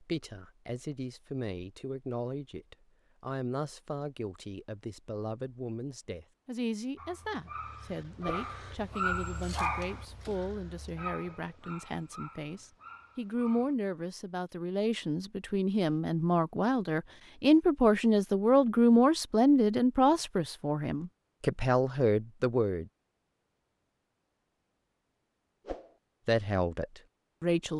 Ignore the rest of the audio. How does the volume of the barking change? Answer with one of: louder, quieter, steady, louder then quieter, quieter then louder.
louder then quieter.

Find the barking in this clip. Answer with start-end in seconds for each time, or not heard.
7.0-13.8.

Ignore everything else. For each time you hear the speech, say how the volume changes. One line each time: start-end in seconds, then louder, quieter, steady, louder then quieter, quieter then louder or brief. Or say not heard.
0.0-22.9 louder
26.2-27.7 brief.